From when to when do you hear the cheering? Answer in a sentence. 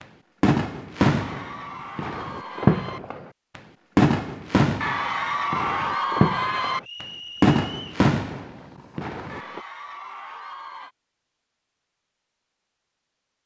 You can hear the cheering from 1.1 to 3.0 s, from 4.8 to 6.8 s and from 9.2 to 10.9 s.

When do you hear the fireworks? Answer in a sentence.
You can hear the fireworks from 0.4 to 9.6 s.